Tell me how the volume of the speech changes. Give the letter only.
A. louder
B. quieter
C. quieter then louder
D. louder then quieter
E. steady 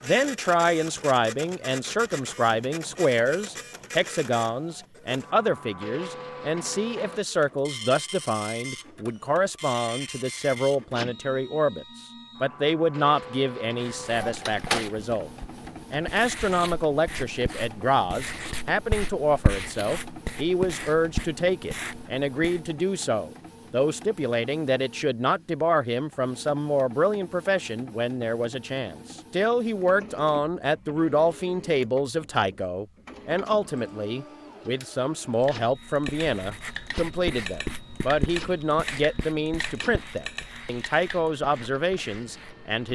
E.